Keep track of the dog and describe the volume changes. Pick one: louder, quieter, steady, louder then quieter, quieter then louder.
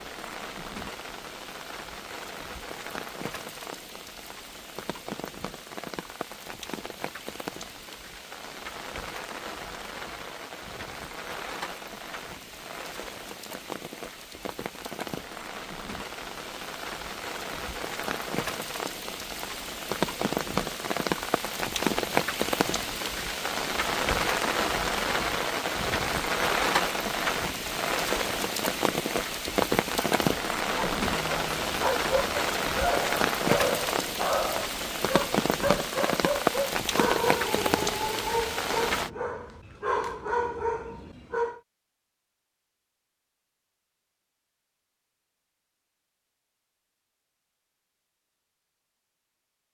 steady.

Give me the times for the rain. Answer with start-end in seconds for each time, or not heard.
0.0-39.1.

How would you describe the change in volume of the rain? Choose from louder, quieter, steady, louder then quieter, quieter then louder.
louder.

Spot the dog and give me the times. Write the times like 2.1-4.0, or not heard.
30.6-41.6.